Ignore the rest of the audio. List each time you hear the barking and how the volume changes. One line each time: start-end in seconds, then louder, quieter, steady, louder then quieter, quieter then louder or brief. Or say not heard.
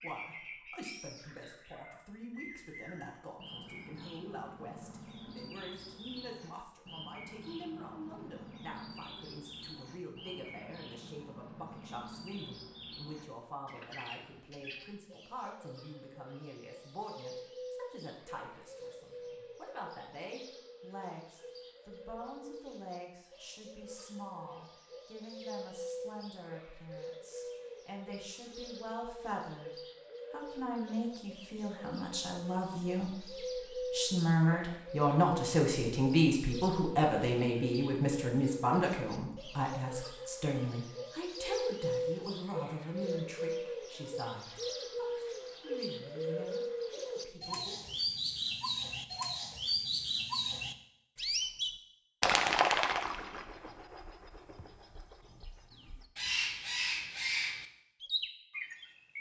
not heard.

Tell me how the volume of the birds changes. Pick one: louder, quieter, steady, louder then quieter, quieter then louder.
louder.